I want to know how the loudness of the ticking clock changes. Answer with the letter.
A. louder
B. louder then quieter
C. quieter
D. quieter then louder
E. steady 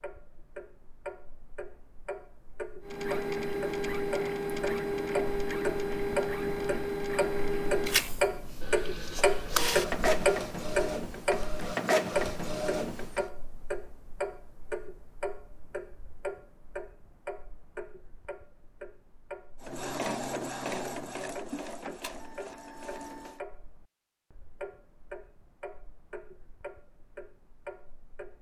B.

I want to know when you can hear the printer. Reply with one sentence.
The printer can be heard from 2.8 to 13.3 s and from 19.6 to 23.4 s.